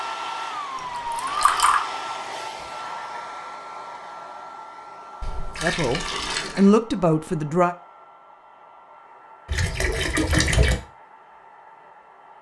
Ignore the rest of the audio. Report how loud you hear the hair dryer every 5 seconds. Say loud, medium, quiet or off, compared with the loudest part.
loud, quiet, quiet.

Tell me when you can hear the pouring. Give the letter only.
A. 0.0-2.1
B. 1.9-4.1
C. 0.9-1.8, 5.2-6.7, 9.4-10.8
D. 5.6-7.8
C.